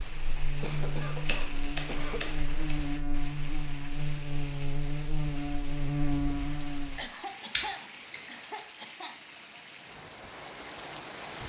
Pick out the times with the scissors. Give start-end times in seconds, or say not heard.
1.2-2.8, 7.5-8.2.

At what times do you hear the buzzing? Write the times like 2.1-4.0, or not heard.
0.0-7.0.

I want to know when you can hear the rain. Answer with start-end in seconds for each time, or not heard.
0.0-11.4.